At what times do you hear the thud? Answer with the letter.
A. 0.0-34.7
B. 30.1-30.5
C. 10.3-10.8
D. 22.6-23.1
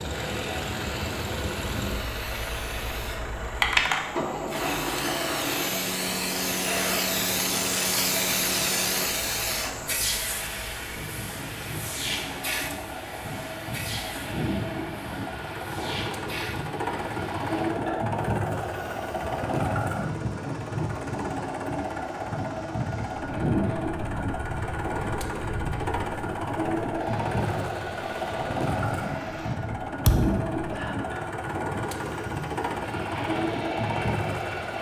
B.